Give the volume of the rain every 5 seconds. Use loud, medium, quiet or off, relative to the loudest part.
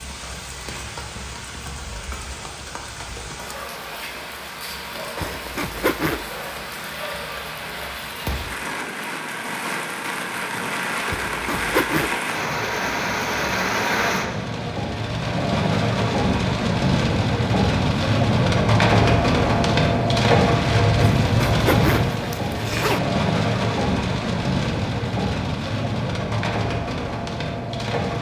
quiet, medium, medium, loud, loud, medium.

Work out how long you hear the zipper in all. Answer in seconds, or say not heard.
4 s.